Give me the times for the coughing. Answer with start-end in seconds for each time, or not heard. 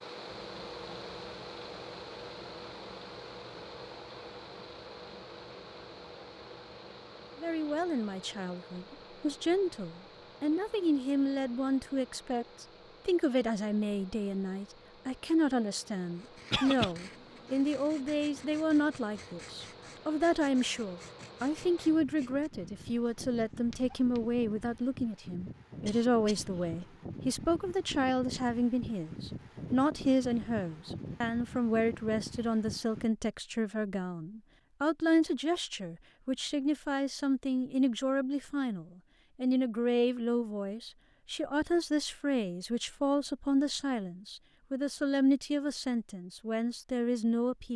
16.5-16.9, 25.8-27.0.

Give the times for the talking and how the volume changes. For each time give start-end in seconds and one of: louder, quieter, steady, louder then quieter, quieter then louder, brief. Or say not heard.
7.4-47.7 steady.